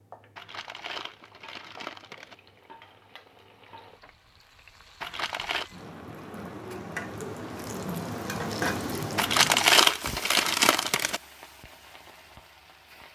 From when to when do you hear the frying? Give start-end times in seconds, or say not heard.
0.0-13.1.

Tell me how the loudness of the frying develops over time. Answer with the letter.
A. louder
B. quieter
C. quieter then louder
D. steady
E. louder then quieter
E.